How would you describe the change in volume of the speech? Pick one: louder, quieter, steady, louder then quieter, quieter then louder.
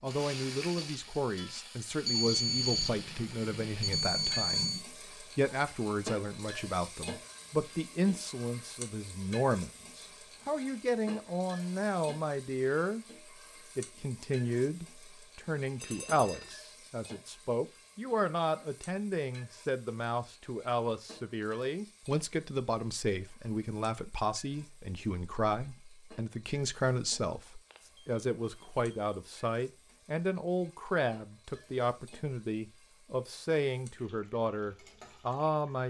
steady.